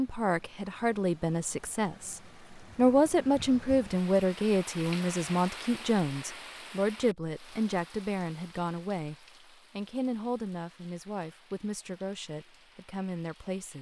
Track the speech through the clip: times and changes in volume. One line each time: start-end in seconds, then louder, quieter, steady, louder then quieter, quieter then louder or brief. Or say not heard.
0.0-13.7 quieter.